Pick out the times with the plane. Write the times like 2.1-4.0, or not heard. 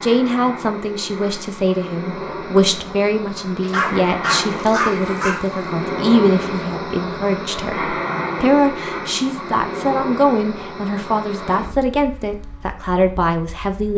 0.0-13.9.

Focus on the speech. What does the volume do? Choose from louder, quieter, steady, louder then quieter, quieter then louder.
steady.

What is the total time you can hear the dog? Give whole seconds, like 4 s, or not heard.
2 s.